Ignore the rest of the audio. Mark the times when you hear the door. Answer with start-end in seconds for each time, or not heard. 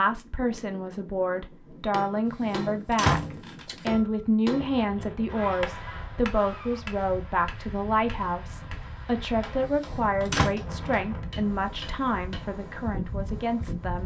2.2-3.8, 9.6-10.6.